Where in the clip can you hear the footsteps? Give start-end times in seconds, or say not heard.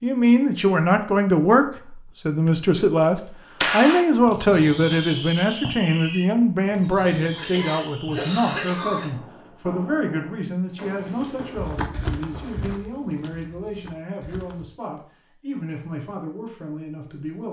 11.6-14.7.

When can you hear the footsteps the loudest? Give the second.
12 s.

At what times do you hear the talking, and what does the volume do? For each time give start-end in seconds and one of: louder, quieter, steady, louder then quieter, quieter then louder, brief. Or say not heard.
0.0-17.4 quieter.